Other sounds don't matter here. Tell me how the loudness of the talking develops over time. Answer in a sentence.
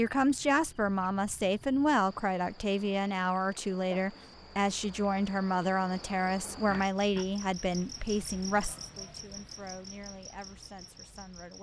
The volume of the talking goes down.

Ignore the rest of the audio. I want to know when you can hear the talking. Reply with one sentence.
You can hear the talking from 0.0 to 11.5 s.